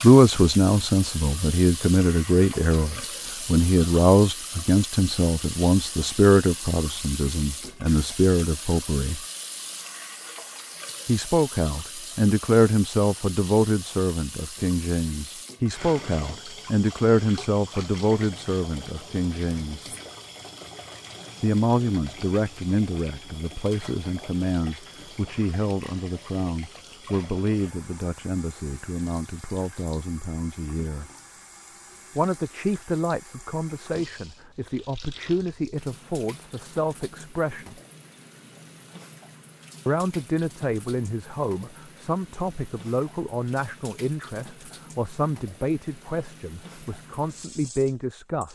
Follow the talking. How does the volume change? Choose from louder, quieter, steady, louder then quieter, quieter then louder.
quieter.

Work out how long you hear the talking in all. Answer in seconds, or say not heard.
42 s.